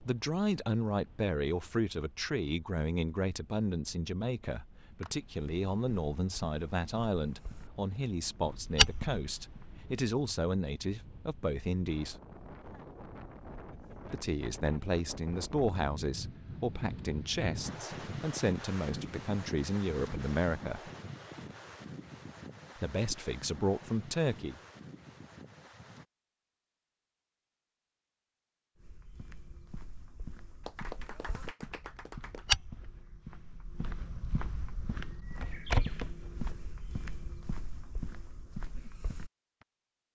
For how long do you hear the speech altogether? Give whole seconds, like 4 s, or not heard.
21 s.